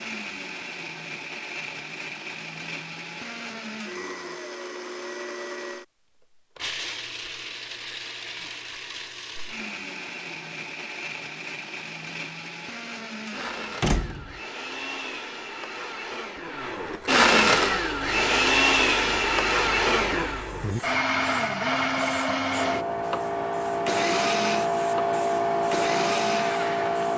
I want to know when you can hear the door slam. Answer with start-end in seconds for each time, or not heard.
13.8-14.4.